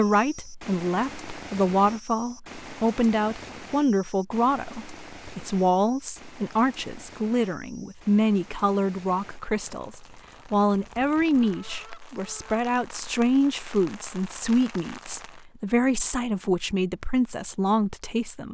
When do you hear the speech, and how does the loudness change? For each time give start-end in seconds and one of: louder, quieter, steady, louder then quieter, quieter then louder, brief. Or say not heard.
0.0-18.4 steady.